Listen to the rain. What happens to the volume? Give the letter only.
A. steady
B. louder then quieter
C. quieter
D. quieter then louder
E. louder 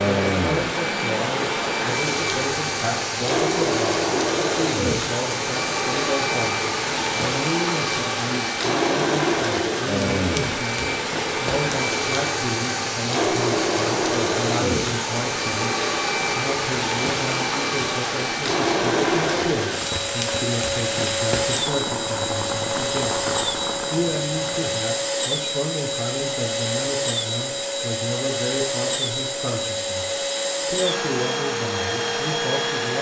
A.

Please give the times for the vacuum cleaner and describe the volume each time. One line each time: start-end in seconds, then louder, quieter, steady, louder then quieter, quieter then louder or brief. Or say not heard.
0.0-32.9 steady.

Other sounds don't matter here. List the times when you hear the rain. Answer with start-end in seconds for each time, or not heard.
0.0-24.9.